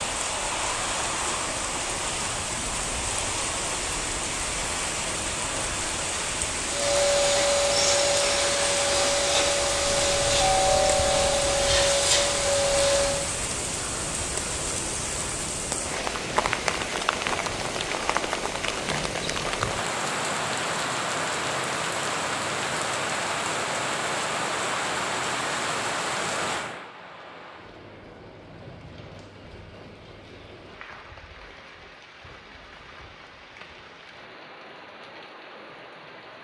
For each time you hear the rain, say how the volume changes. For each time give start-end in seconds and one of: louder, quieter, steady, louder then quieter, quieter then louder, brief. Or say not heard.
0.0-36.3 quieter.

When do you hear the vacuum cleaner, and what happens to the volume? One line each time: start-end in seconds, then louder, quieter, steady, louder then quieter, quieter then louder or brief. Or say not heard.
6.7-13.2 steady.